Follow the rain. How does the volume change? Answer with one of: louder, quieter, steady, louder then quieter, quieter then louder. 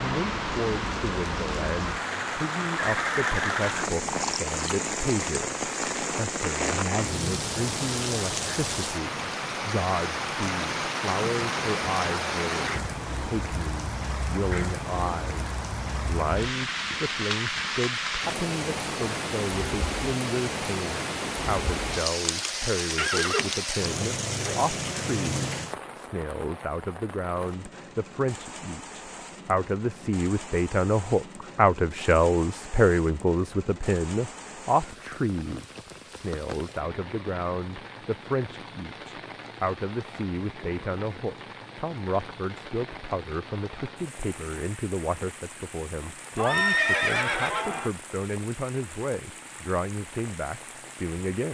quieter.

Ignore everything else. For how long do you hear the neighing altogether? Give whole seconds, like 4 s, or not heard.
4 s.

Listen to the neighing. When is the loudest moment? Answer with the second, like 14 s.
47 s.